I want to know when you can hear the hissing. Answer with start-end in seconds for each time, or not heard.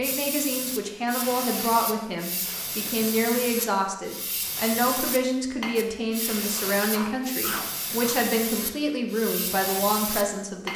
0.0-10.7.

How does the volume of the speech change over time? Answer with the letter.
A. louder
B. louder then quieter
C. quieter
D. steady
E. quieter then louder
D.